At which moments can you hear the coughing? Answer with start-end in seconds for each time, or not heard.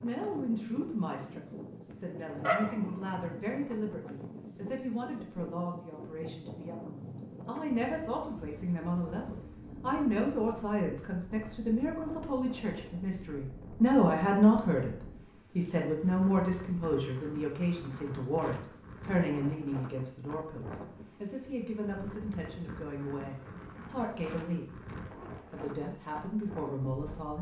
not heard.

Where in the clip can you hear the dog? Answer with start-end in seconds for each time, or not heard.
1.9-3.1.